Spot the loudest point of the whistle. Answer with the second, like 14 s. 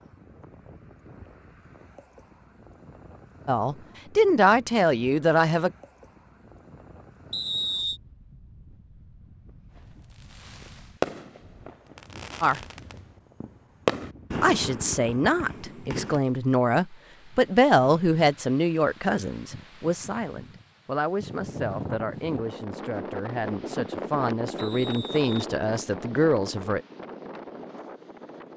8 s.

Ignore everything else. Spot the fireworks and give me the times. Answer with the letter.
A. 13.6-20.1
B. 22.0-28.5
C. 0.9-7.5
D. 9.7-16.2
D.